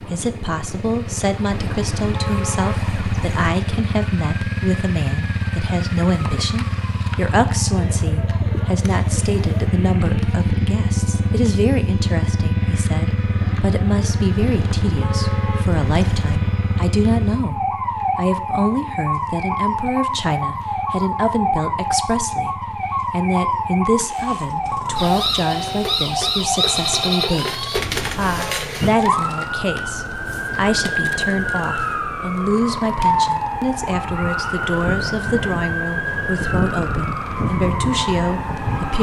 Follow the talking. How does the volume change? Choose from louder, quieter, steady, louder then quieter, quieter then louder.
steady.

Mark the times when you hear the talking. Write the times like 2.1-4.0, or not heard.
0.0-38.9.